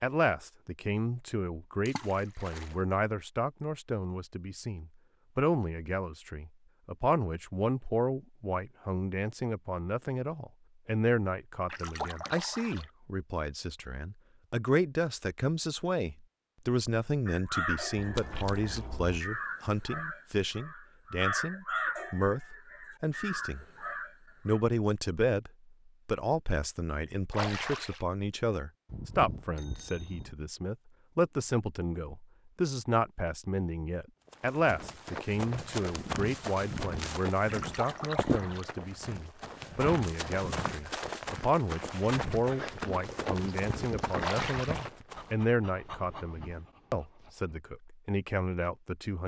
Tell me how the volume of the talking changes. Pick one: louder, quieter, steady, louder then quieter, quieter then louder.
steady.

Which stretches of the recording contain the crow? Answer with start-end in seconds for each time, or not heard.
17.2-24.6.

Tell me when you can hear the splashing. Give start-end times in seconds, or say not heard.
1.9-2.8, 11.7-12.9, 18.1-18.8, 27.3-28.1, 37.5-38.7, 44.2-44.9.